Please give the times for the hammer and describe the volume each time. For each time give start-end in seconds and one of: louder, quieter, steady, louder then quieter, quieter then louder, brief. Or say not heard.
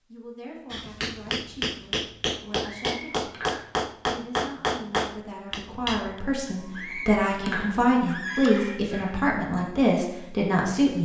0.7-6.2 steady.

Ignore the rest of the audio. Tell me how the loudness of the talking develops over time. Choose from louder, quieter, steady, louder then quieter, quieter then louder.
louder.